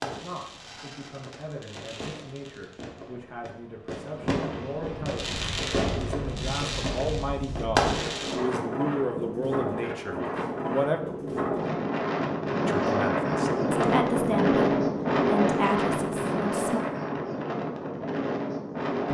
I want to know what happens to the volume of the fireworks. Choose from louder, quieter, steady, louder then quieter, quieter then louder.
louder.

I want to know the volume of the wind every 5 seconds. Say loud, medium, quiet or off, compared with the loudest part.
off, medium, loud, loud.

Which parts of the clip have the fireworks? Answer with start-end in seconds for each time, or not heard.
0.0-8.3.